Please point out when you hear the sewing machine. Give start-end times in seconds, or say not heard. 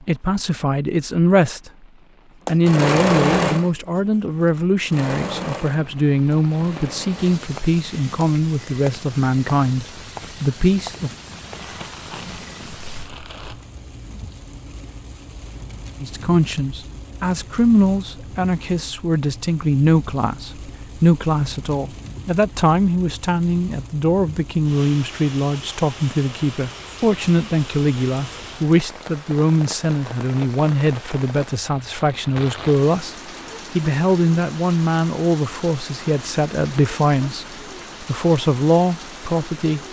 2.5-7.4.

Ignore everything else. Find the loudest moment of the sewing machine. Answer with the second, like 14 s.
3 s.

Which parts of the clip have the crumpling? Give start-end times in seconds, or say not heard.
11.3-13.7.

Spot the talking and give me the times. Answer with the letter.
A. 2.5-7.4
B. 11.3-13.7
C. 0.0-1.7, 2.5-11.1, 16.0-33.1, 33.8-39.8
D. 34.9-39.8
C.